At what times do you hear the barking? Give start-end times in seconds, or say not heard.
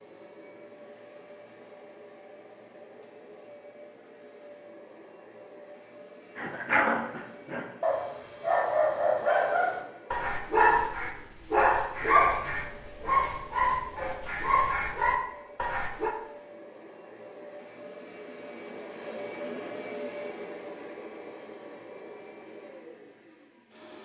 6.3-16.1.